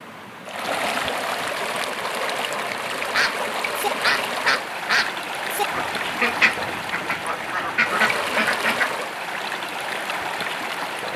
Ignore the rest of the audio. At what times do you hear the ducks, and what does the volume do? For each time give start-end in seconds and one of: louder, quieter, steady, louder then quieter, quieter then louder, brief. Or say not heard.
3.1-8.9 quieter then louder.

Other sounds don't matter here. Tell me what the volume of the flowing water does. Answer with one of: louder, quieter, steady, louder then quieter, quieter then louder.
steady.